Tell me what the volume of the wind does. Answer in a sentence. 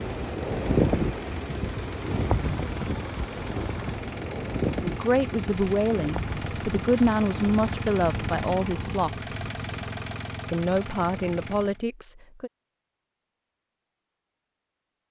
The loudness of the wind goes down.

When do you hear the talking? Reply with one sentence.
The talking can be heard from 4.8 to 9.1 s and from 10.4 to 12.5 s.